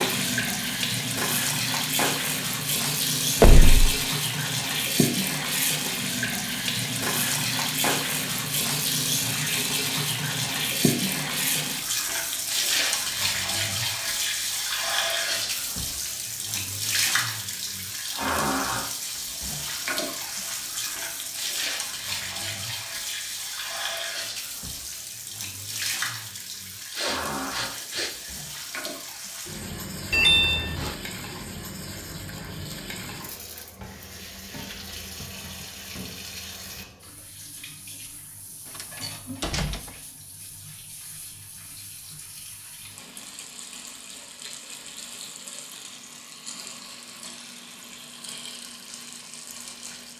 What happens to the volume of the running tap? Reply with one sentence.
The volume of the running tap goes down.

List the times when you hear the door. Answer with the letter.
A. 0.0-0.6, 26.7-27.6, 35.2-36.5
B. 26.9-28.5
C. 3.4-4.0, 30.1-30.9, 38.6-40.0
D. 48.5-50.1
C.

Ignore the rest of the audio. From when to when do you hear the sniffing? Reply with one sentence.
You can hear the sniffing from 26.9 to 28.5 s.